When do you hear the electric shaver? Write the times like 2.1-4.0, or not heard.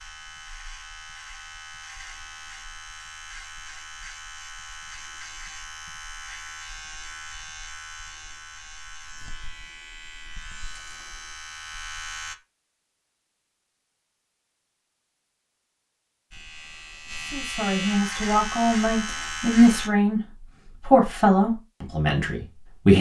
0.0-12.3, 16.3-19.9.